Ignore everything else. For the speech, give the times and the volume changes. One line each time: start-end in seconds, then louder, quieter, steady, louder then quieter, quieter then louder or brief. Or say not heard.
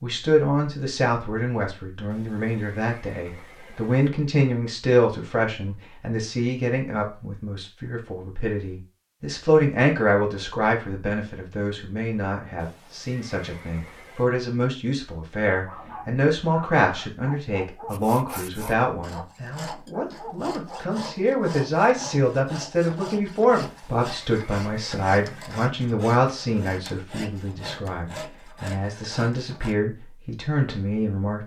0.0-31.4 steady.